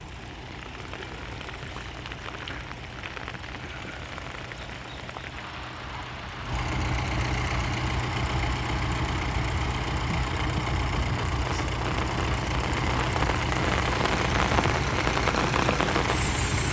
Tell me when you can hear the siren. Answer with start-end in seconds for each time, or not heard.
not heard.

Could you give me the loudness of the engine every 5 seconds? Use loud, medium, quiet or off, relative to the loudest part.
quiet, loud, loud, loud.